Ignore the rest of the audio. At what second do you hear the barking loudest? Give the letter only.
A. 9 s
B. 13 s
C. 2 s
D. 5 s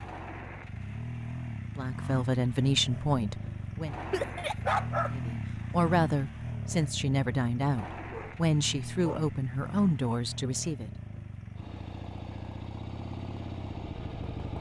D.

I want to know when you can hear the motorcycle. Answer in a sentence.
You can hear the motorcycle from 0.0 to 14.5 s.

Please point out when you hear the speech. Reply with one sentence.
You can hear the speech from 1.8 to 4.0 s and from 5.1 to 10.9 s.